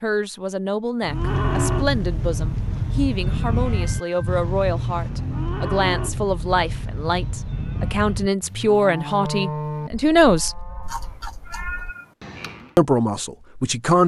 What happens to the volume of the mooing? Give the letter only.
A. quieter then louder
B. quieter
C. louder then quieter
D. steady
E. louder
B.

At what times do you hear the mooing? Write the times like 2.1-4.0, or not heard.
1.0-12.8.